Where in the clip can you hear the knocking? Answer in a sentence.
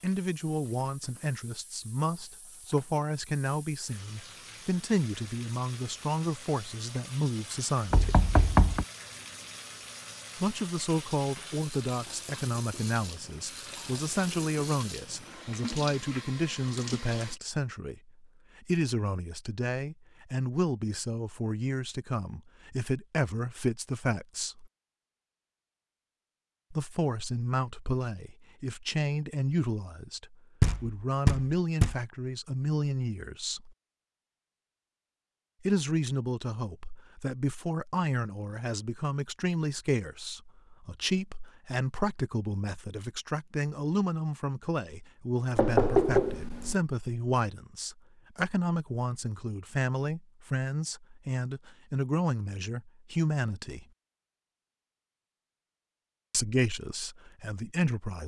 You can hear the knocking from 7.9 to 8.8 s, from 30.6 to 31.9 s and from 45.5 to 46.8 s.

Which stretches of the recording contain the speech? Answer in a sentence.
The speech can be heard from 0.0 to 8.2 s, from 10.3 to 24.7 s, from 26.7 to 33.8 s, from 35.6 to 53.9 s and from 56.3 to 58.2 s.